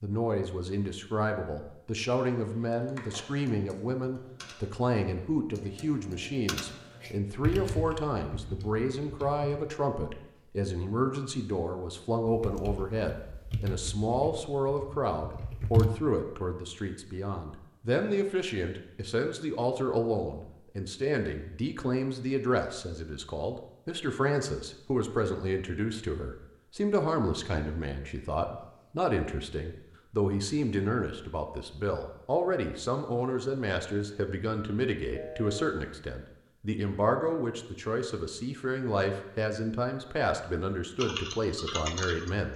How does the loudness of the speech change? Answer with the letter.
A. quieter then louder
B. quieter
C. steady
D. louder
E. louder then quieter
C.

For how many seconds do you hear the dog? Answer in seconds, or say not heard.
not heard.